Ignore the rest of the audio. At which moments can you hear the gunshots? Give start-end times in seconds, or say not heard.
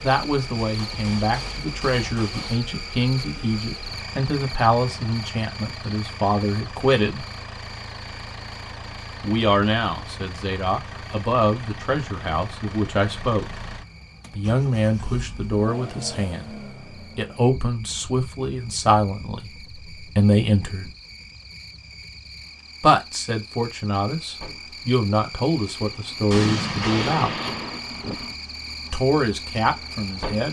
0.6-2.6, 26.3-27.8.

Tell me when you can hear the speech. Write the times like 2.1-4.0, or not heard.
0.0-7.2, 9.2-13.4, 14.3-16.6, 17.1-20.9, 22.8-27.3, 28.9-30.4.